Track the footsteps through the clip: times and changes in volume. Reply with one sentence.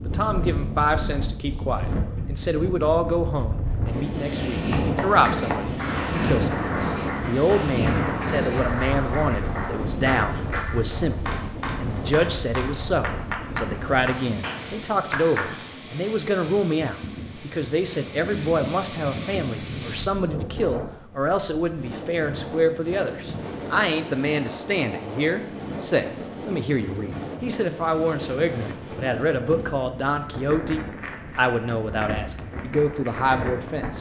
You can't hear the footsteps here.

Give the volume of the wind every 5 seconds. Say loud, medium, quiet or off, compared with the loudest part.
loud, loud, medium, medium, medium, medium, medium.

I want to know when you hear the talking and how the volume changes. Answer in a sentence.
The talking can be heard from 0.0 to 33.9 s, at a steady volume.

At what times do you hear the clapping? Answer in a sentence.
You can hear the clapping from 4.7 to 15.6 s.